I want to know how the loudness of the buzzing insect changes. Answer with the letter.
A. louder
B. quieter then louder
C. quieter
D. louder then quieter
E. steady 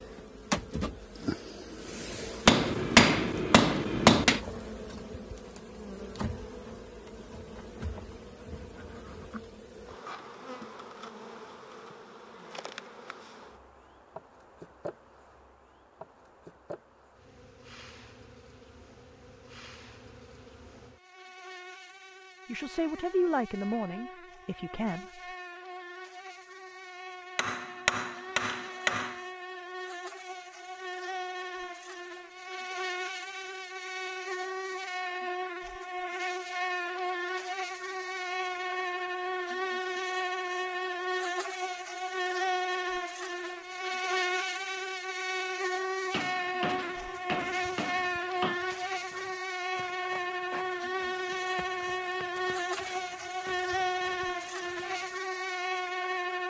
B.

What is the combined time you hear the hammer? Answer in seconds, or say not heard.
6 s.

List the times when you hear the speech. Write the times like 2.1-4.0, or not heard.
22.4-25.2.